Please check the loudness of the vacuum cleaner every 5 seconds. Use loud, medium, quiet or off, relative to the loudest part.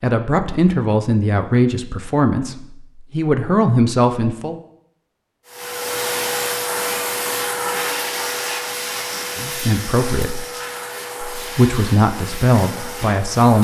off, loud, medium.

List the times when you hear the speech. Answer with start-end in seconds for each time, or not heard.
0.0-4.5, 9.3-10.4, 11.4-13.5.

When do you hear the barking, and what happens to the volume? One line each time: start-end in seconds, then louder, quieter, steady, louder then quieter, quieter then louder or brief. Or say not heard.
not heard.